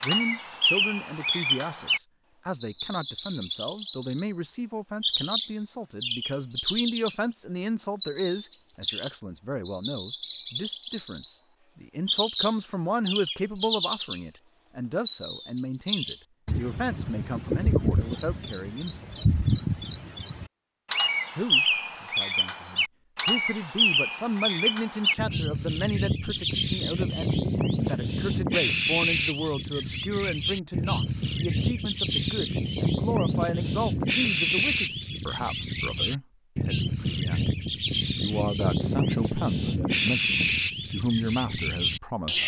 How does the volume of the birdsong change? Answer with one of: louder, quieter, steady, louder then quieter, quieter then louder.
steady.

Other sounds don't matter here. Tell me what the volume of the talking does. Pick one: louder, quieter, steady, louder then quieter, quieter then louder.
steady.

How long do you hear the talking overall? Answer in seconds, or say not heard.
40 s.